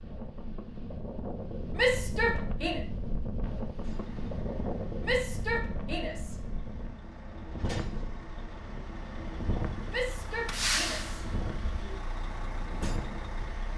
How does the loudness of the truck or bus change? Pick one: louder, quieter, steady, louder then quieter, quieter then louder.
louder then quieter.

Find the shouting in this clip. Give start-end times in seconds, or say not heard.
1.8-2.8, 5.0-6.4, 9.9-11.9.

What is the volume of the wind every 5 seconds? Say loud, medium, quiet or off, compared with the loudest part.
loud, loud, medium.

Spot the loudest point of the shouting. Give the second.
2 s.